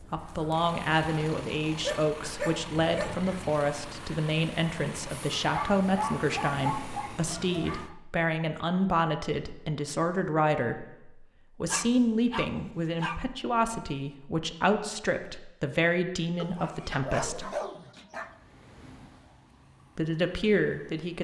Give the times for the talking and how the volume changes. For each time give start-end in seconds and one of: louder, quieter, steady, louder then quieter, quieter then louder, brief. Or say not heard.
0.0-17.5 steady
19.9-21.1 brief.